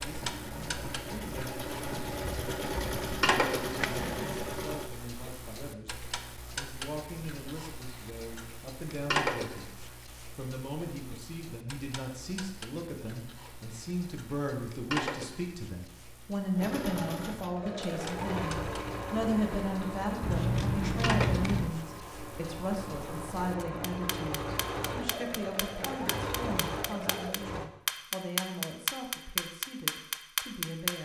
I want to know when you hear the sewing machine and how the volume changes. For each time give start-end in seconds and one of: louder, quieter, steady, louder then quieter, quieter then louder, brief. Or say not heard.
0.0-4.9 louder
16.6-27.7 quieter then louder.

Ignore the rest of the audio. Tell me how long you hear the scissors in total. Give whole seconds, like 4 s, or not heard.
2 s.